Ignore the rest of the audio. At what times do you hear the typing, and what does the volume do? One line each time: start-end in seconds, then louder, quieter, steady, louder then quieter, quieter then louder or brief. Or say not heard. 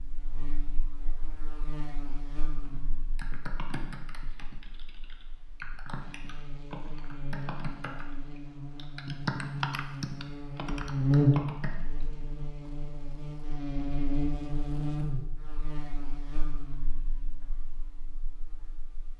2.6-12.7 louder then quieter.